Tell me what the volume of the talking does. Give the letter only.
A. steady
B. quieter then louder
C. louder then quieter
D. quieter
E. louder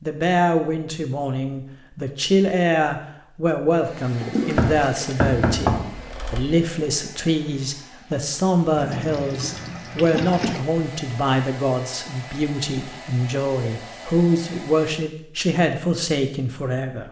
A.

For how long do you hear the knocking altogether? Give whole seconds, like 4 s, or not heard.
2 s.